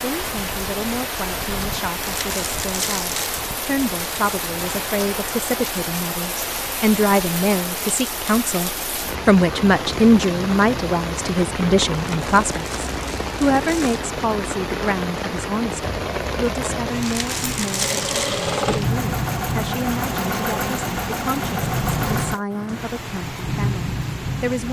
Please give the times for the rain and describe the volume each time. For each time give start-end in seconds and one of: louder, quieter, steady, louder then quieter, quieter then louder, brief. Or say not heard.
0.0-24.6 steady.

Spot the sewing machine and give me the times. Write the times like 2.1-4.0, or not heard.
17.7-22.4.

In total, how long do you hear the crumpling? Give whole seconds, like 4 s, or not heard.
5 s.